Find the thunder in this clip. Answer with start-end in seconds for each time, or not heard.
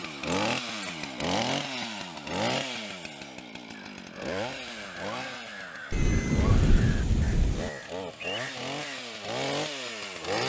5.9-7.7.